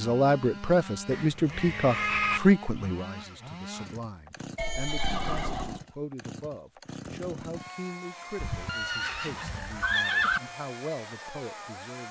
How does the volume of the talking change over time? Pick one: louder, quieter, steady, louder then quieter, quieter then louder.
quieter.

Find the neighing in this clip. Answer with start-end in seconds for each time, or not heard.
1.1-2.4, 4.5-5.8, 8.3-10.4.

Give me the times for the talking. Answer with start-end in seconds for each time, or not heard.
0.0-12.0.